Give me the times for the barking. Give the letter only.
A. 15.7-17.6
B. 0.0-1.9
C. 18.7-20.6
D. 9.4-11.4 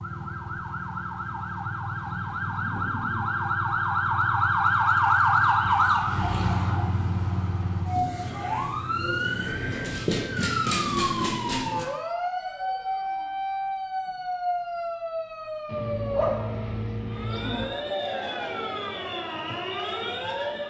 A.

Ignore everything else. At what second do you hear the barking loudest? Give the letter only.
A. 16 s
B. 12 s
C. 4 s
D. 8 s
A.